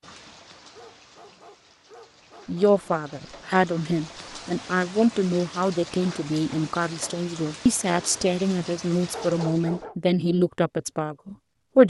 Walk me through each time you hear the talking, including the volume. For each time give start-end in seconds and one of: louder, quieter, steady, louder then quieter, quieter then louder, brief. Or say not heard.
2.5-11.8 steady.